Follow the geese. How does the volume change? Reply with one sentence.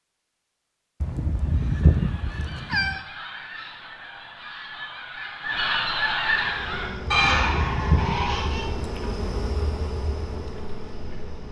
The loudness of the geese goes up.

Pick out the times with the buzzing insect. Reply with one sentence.
The buzzing insect can be heard from 6.2 to 11.4 s.